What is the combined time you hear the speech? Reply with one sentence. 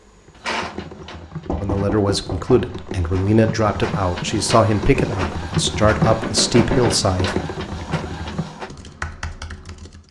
The speech can be heard for 6 seconds in total.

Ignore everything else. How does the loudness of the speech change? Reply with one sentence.
The loudness of the speech stays about the same.